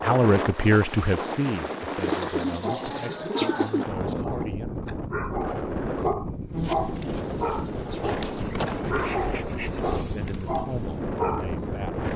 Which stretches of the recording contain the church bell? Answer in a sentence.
The church bell can't be heard in this clip.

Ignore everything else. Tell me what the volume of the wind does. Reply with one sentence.
The loudness of the wind stays about the same.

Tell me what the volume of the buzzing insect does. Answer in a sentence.
The loudness of the buzzing insect goes up, then down.